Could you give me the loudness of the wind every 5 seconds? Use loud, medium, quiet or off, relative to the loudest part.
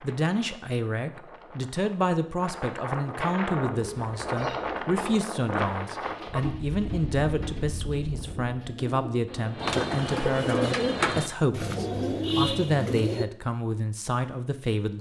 loud, loud, off.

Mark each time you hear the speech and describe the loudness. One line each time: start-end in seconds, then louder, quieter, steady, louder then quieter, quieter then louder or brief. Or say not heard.
0.0-14.9 steady.